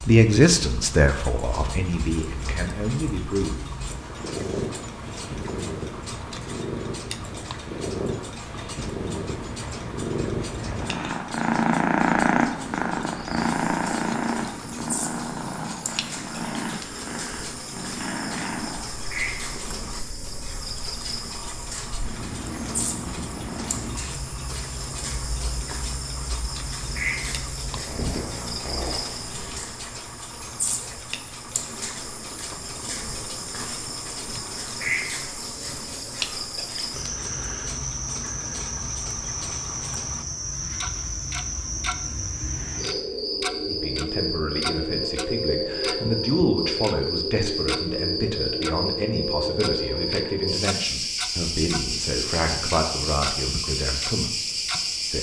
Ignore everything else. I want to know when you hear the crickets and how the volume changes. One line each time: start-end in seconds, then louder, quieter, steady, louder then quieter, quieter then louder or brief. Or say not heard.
13.1-55.1 louder.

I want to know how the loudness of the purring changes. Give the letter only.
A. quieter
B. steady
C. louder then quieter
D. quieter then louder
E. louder
C.